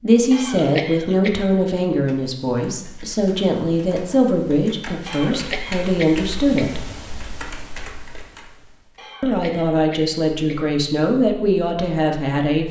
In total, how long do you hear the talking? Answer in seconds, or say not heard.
10 s.